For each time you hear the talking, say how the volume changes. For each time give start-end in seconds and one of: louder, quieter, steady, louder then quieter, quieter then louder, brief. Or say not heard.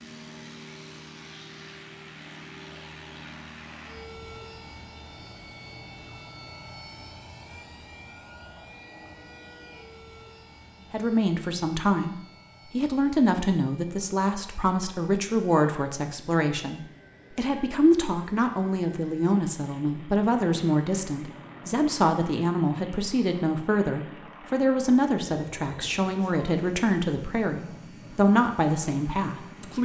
10.9-29.8 steady.